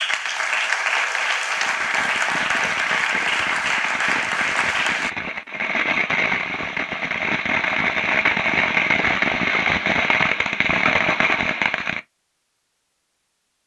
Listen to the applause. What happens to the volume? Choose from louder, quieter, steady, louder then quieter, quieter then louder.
steady.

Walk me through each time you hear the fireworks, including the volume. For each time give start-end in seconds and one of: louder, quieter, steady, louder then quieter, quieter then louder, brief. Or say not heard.
1.5-12.0 louder.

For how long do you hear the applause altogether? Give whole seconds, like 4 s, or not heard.
5 s.